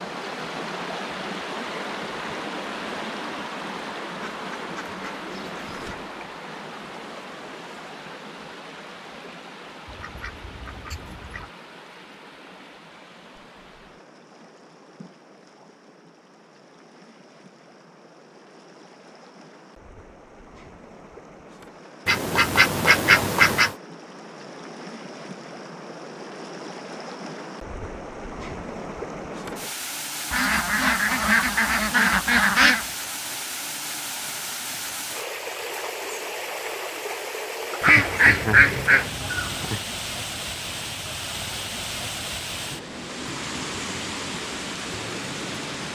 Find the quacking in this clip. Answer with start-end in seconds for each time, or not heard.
4.3-6.1, 9.8-11.5, 22.1-23.8, 30.3-32.9, 37.8-39.8.